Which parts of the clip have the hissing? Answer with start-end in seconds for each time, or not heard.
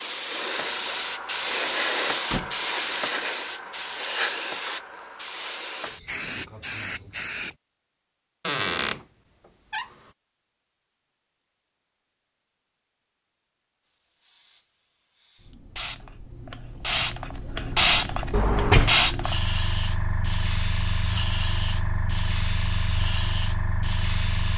0.0-7.5, 14.2-24.5.